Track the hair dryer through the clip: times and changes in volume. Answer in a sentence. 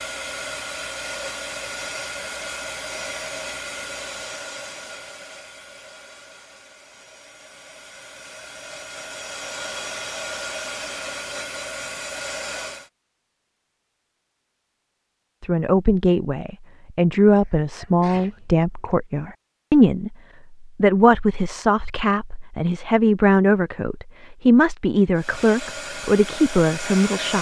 You can hear the hair dryer from 0.0 to 12.9 s, getting quieter then louder; and briefly from 25.1 to 27.3 s.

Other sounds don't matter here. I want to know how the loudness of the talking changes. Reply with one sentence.
The loudness of the talking stays about the same.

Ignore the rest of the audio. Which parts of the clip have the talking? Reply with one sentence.
You can hear the talking from 15.4 to 27.3 s.